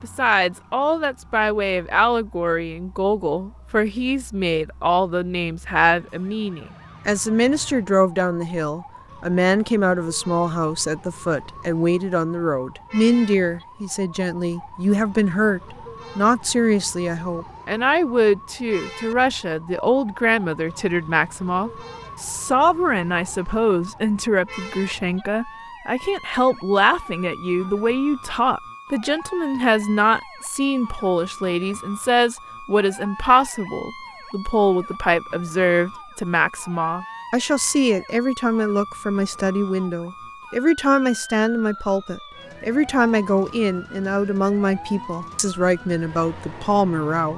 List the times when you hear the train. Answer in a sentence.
You can't hear the train here.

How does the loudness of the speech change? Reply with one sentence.
The volume of the speech stays about the same.